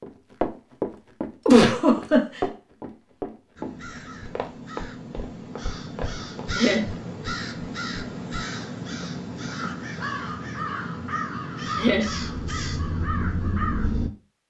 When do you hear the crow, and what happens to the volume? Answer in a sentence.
The crow can be heard from 3.5 to 14.1 s, getting louder.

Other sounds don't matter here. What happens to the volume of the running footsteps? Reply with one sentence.
The loudness of the running footsteps goes down.